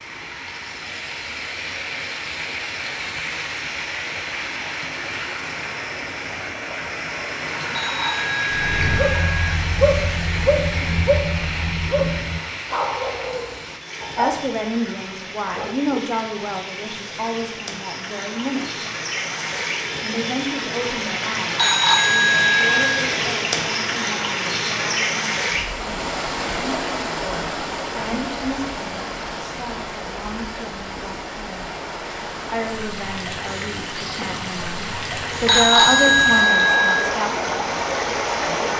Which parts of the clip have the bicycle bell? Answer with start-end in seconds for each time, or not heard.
7.7-9.6, 21.6-23.1, 35.5-37.1.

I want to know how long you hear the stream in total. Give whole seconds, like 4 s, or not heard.
39 s.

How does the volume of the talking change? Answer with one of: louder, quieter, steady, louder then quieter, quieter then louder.
quieter then louder.